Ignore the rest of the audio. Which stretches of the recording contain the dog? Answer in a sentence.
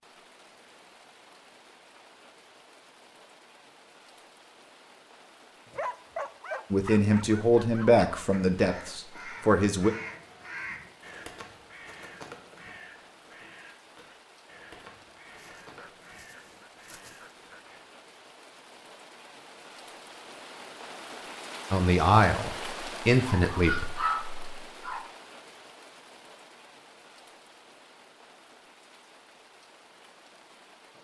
The dog can be heard from 5.7 to 8.1 s, from 15.3 to 17.8 s and from 23.1 to 25.1 s.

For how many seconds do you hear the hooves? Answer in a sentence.
You can't hear the hooves here.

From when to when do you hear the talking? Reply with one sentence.
You can hear the talking from 6.7 to 9.9 s and from 21.7 to 23.9 s.